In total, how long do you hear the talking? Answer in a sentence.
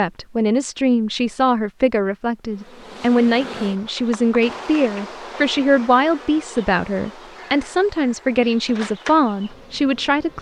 You can hear the talking for 10 seconds altogether.